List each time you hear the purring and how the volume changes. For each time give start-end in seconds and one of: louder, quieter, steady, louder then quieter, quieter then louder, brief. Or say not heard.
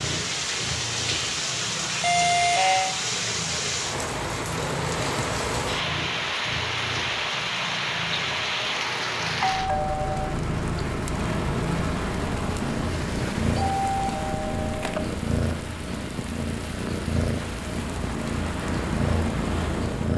0.0-20.1 louder.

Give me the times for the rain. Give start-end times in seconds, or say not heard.
0.0-20.1.